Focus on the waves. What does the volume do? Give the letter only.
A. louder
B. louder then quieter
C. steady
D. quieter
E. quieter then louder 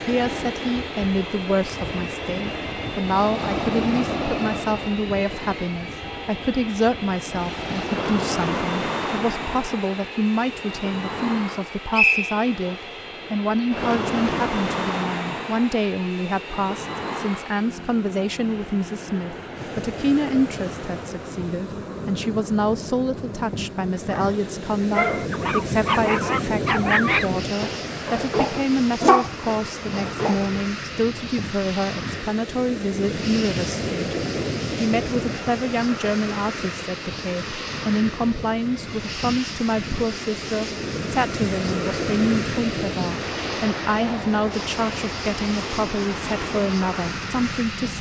C.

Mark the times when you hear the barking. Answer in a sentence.
The barking can be heard from 24.1 to 30.6 s.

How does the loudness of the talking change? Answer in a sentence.
The loudness of the talking stays about the same.